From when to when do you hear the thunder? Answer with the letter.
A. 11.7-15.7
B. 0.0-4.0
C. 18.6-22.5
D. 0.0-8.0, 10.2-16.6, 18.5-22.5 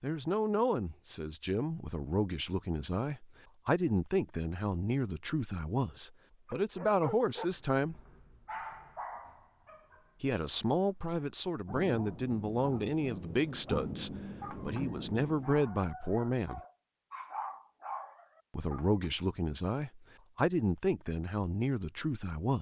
A.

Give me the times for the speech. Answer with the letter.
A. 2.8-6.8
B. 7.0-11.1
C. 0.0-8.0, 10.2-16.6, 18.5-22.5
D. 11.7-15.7
C.